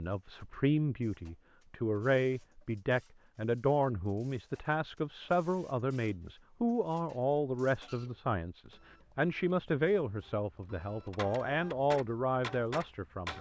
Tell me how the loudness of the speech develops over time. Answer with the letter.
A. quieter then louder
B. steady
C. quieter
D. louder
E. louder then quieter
B.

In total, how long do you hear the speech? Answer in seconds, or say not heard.
13 s.